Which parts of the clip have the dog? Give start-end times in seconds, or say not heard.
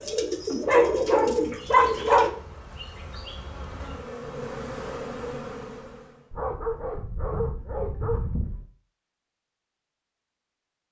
0.7-2.4, 6.3-8.7.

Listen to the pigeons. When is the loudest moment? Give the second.
1 s.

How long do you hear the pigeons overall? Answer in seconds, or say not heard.
2 s.